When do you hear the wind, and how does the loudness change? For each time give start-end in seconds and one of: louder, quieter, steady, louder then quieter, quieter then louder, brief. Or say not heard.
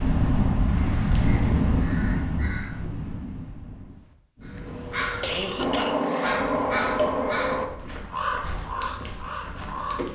0.0-10.1 quieter.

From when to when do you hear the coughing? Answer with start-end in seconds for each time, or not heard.
4.5-6.0.